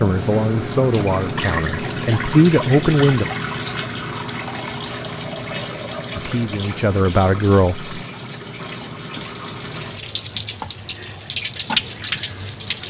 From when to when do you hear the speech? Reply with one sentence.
The speech can be heard from 0.0 to 3.2 s and from 6.2 to 7.9 s.